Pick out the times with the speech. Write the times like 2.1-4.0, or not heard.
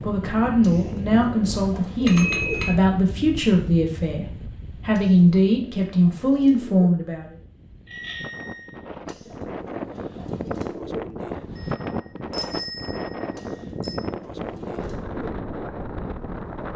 0.0-7.3.